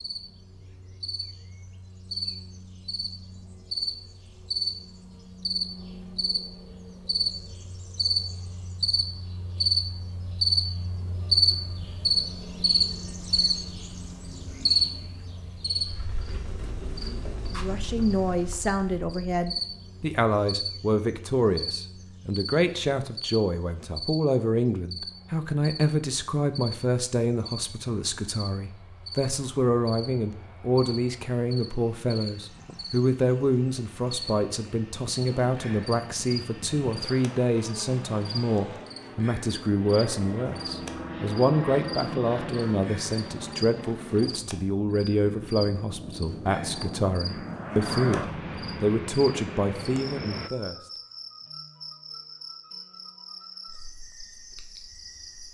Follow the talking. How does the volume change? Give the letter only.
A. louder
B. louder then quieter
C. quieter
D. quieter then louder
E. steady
E.